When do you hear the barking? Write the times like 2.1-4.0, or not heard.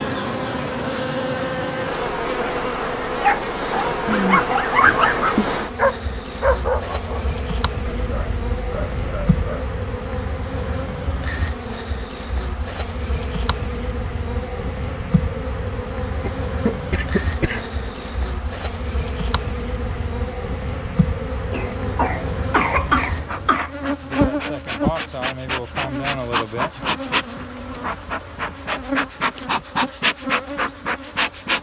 3.2-9.7.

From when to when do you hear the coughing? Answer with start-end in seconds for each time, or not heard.
4.0-5.5, 16.2-18.0, 21.5-23.7.